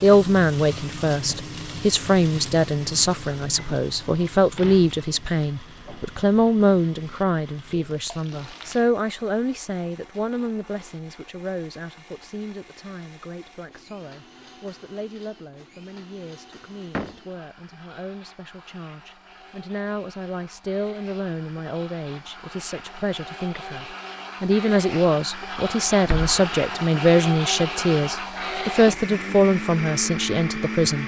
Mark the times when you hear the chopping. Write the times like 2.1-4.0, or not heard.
not heard.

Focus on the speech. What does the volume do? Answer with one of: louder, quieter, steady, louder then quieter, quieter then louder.
quieter then louder.